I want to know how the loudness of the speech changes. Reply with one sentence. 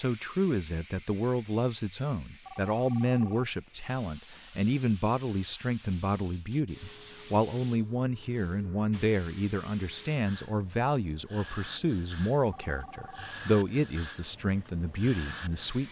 The loudness of the speech stays about the same.